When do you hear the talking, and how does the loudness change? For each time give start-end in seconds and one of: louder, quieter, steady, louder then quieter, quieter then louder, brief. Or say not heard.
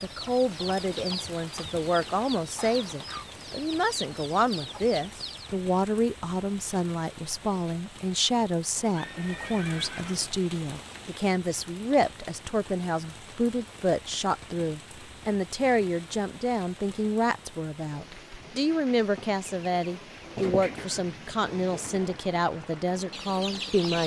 0.0-24.0 steady.